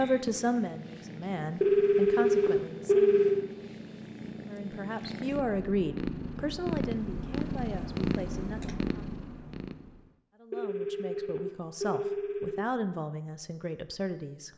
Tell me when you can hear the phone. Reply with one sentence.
You can hear the phone from 1.6 to 3.4 s and from 10.5 to 12.6 s.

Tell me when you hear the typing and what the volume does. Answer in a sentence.
The typing can't be heard in this clip.